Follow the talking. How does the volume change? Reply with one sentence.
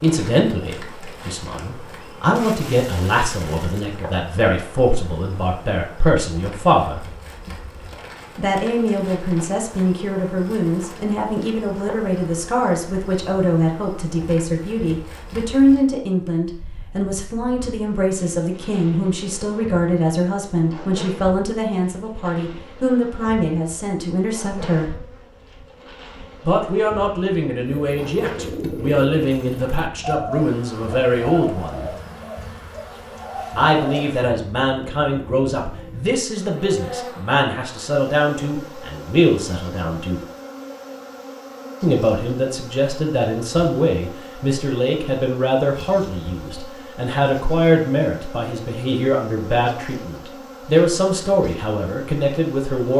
The loudness of the talking stays about the same.